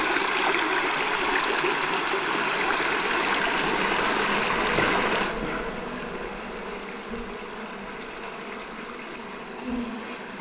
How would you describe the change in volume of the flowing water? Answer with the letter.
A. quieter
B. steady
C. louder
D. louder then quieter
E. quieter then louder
A.